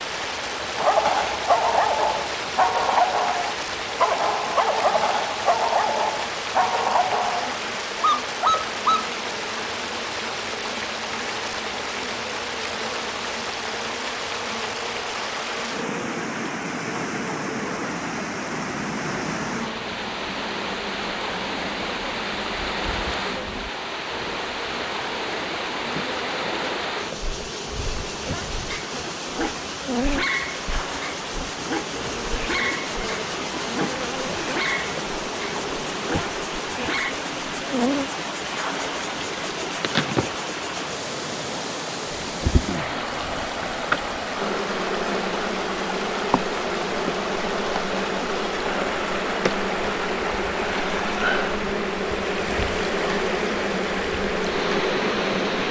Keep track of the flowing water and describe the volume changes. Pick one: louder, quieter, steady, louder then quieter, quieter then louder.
steady.